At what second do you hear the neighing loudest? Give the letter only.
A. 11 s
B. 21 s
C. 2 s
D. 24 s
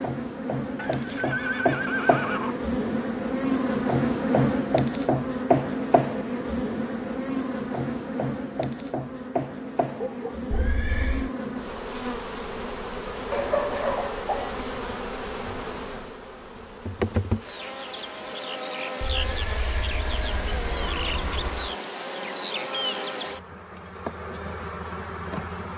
C.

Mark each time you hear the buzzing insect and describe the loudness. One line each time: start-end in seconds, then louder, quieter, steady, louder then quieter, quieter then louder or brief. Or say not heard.
0.0-25.7 quieter.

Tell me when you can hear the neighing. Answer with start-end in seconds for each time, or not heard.
0.8-2.6, 10.5-11.3, 19.0-21.8.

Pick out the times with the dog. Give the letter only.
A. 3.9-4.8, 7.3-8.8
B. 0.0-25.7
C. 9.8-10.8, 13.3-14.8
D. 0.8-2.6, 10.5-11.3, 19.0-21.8
C.